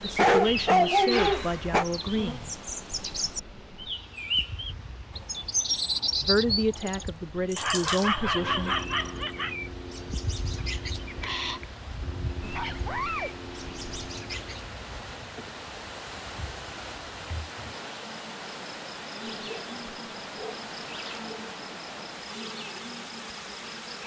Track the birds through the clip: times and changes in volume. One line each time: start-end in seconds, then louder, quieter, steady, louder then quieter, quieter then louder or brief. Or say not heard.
0.0-14.8 louder then quieter.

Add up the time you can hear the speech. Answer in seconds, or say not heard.
5 s.